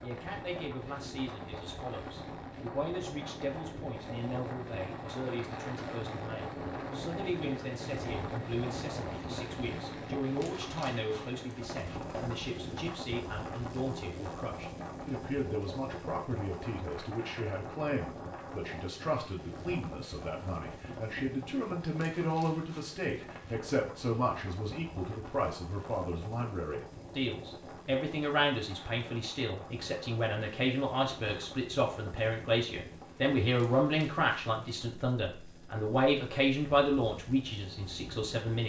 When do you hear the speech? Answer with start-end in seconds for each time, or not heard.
0.0-38.6.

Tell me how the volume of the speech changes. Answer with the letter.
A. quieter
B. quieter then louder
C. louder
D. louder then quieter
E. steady
C.